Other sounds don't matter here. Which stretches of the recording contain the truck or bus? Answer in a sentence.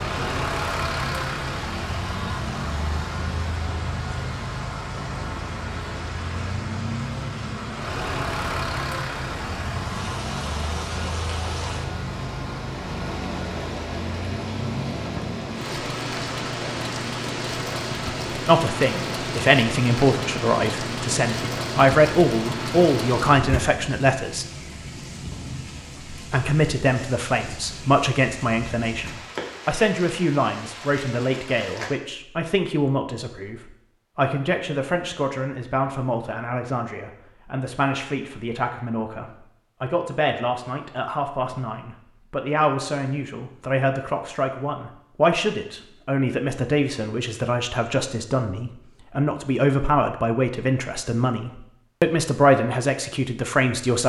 You can hear the truck or bus from 0.0 to 23.6 s.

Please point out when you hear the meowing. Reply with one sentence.
You can't hear the meowing here.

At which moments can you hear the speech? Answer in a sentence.
You can hear the speech from 18.4 to 24.4 s and from 26.1 to 54.0 s.